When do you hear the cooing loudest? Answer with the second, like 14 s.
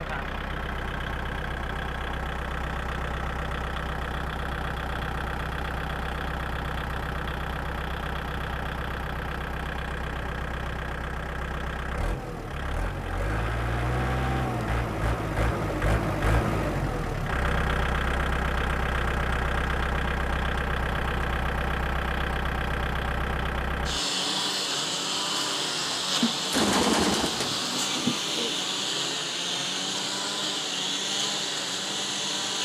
27 s.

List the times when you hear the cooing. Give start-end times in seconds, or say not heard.
26.0-28.6.